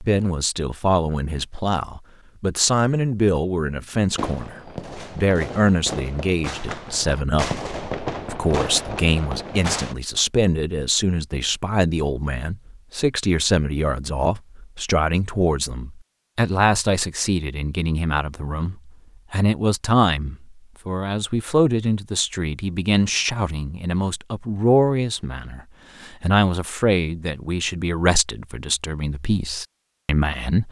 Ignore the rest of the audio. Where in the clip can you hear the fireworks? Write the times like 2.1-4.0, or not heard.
4.1-9.9.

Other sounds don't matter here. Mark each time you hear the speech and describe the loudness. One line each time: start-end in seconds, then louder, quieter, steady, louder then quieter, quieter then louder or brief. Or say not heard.
0.0-30.6 steady.